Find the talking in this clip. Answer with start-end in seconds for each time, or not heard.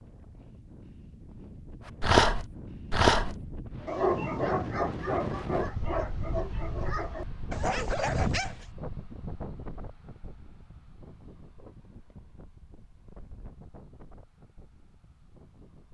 not heard.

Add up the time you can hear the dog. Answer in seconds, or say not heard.
7 s.